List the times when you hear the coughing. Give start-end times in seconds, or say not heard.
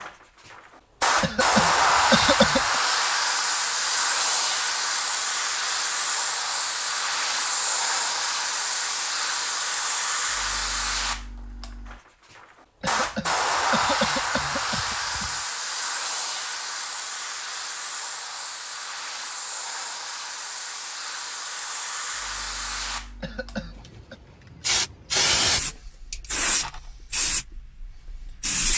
1.2-2.8, 12.8-15.3, 23.2-24.1.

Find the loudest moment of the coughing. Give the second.
2 s.